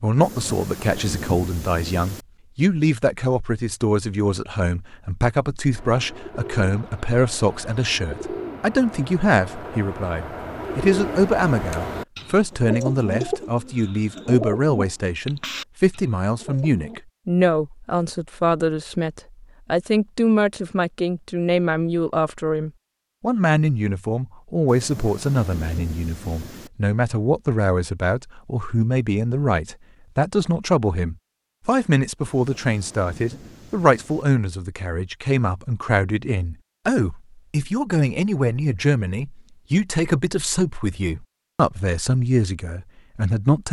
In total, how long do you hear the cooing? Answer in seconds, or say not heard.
11 s.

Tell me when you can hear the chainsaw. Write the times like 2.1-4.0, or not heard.
not heard.